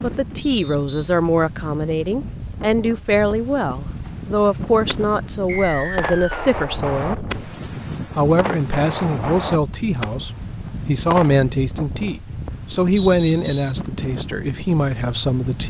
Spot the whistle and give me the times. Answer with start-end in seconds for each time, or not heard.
0.7-1.1, 5.5-6.5, 12.9-13.8.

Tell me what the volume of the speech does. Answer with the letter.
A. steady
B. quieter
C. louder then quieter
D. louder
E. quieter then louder
A.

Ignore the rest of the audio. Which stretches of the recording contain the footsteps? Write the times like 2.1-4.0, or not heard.
not heard.